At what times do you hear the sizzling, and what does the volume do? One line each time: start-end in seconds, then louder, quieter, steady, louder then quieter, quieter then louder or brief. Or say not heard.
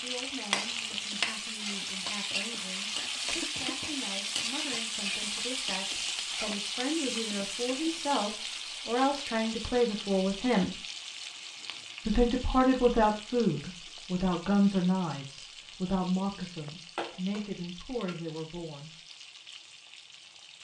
0.0-20.5 quieter.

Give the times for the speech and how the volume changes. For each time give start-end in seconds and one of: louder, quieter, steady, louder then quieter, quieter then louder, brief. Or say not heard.
0.0-10.8 louder
12.1-18.9 quieter.